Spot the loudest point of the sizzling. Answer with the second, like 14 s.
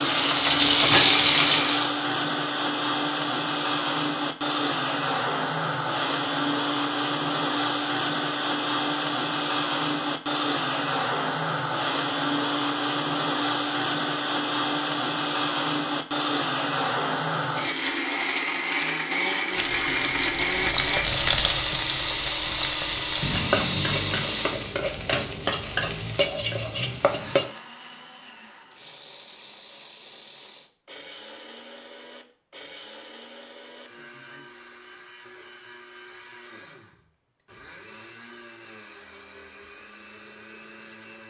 1 s.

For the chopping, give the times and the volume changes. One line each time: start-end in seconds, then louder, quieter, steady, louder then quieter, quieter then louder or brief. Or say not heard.
not heard.